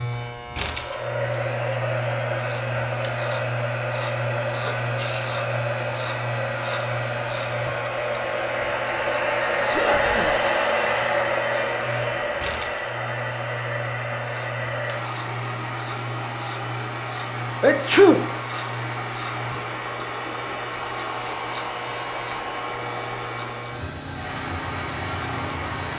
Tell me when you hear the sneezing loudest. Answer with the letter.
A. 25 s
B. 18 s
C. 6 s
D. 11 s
B.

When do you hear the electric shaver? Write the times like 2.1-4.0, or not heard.
0.0-25.9.